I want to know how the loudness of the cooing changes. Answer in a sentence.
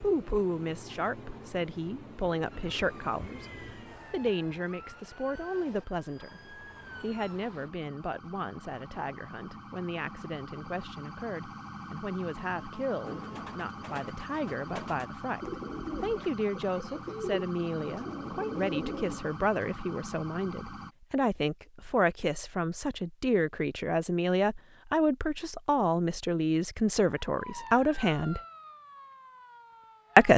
The volume of the cooing goes up.